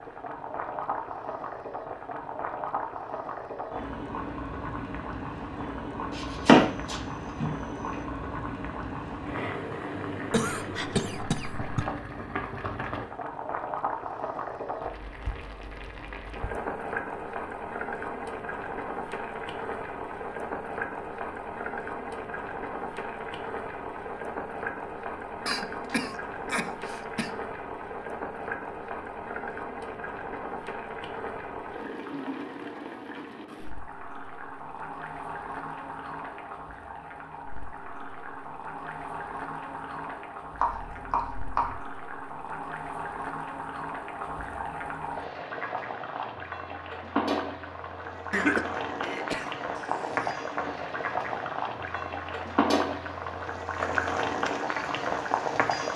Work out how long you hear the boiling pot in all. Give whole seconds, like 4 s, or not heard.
56 s.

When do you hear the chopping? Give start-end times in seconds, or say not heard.
6.2-7.5, 40.5-41.7.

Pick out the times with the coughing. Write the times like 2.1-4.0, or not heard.
10.3-11.8, 25.4-27.3, 48.3-50.4.